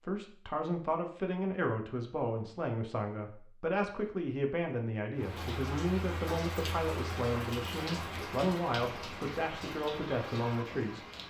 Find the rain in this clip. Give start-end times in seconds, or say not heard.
5.2-11.2.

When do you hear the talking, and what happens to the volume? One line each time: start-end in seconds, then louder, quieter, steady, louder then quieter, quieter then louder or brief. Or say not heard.
0.0-11.1 steady.